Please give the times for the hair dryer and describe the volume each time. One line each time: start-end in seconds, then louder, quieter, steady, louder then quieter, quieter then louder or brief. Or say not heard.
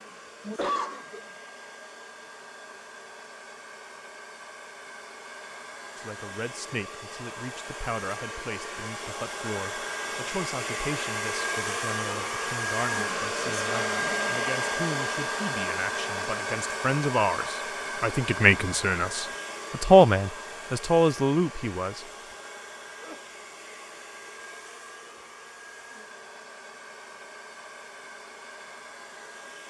0.0-29.6 louder then quieter.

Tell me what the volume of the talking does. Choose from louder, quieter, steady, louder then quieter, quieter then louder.
louder.